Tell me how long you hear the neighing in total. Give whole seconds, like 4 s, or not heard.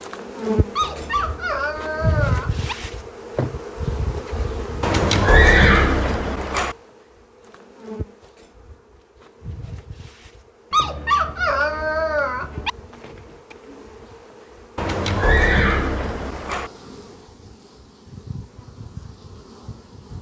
4 s.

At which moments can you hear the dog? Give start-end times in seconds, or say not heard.
0.8-2.8, 10.7-12.7.